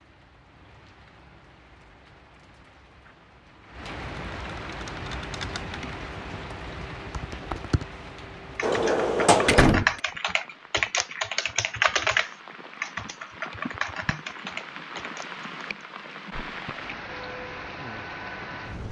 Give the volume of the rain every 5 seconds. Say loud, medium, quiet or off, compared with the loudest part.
medium, loud, medium, loud.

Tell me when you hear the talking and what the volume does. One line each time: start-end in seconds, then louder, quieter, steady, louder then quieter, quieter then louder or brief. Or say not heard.
not heard.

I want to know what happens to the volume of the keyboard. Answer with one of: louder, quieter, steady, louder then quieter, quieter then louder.
louder then quieter.